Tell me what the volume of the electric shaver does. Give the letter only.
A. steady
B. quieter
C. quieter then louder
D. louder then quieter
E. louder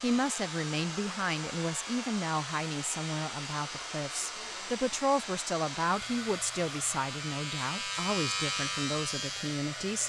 E.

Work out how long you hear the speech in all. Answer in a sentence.
You can hear the speech for 10 seconds altogether.